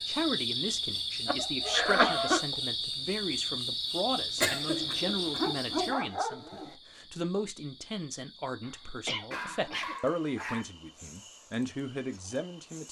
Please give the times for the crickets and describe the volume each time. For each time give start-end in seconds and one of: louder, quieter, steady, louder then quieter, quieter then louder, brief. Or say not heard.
0.0-12.8 quieter.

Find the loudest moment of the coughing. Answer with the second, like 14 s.
2 s.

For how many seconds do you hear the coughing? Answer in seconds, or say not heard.
3 s.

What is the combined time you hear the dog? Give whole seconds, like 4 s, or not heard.
5 s.